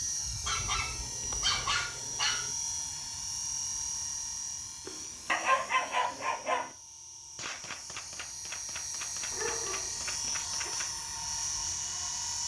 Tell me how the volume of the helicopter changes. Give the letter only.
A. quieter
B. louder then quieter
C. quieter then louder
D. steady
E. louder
C.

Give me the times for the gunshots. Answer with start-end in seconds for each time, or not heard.
7.3-11.0.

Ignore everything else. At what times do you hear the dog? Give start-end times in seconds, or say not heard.
0.5-2.5, 4.8-6.7, 9.3-10.7.